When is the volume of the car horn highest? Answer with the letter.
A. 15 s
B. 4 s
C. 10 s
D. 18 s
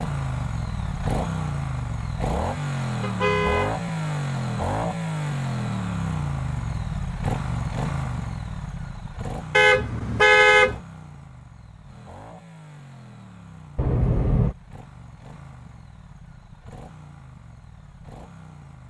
C.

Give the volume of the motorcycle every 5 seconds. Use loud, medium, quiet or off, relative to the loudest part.
loud, loud, quiet, quiet.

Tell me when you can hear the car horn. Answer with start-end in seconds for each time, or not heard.
3.0-3.8, 9.5-10.8, 13.8-14.6.